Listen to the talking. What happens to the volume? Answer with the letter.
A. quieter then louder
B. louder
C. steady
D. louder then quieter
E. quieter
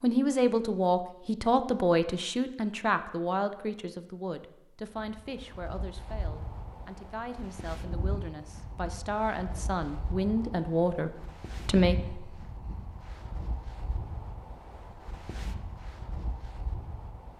A.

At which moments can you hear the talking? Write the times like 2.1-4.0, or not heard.
0.0-12.4.